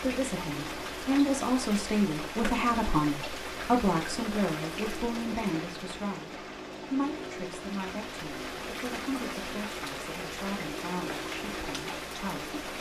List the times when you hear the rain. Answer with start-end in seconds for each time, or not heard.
0.0-12.7.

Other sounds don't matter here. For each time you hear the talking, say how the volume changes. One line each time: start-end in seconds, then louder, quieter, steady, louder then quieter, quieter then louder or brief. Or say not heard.
0.0-12.6 quieter.